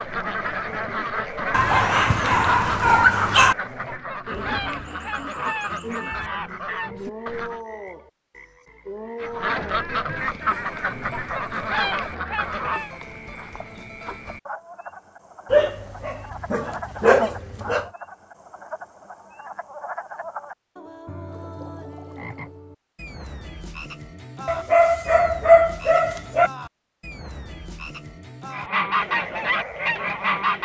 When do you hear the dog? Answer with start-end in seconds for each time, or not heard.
1.5-3.5, 15.5-17.9, 24.4-26.5.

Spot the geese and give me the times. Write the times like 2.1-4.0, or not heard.
0.0-7.6, 9.2-12.9, 28.5-30.5.